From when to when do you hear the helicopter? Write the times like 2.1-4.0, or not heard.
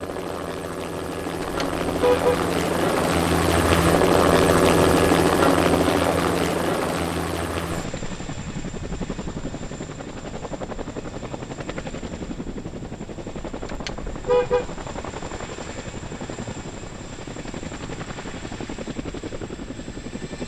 0.0-20.4.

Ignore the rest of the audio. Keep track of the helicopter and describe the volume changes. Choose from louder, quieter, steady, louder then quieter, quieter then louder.
quieter.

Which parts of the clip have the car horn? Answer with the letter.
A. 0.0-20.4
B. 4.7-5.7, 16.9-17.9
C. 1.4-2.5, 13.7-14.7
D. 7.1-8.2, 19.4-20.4
C.